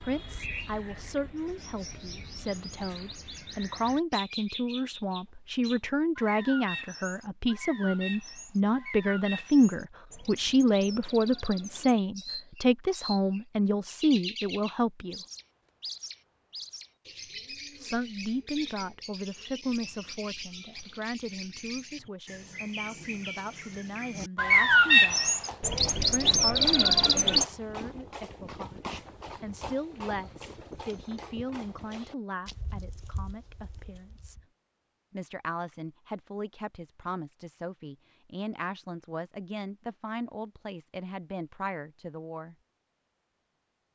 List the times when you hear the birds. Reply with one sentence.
You can hear the birds from 0.0 to 27.4 s.